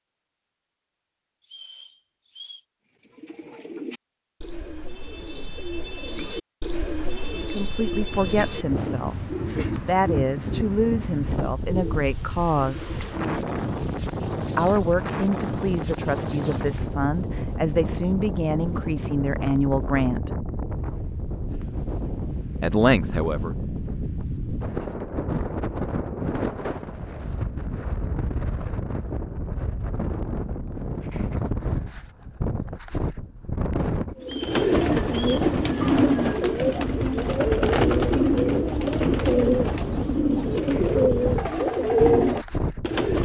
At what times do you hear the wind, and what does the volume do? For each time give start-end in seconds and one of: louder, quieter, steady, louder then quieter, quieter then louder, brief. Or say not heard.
8.1-43.2 steady.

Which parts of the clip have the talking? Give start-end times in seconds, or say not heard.
7.3-13.0, 14.6-20.3, 22.6-23.6.